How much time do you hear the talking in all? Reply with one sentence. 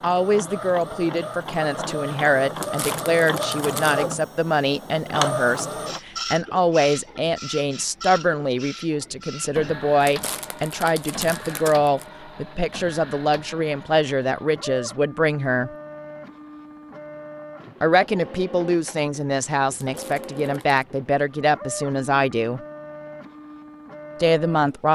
You can hear the talking for 21 seconds altogether.